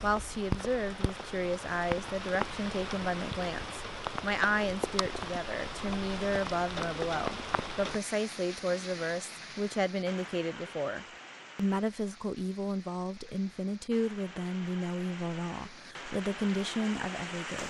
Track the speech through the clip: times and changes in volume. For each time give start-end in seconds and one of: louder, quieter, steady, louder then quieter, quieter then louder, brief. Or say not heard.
0.0-17.6 steady.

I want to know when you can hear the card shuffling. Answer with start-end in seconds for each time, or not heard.
not heard.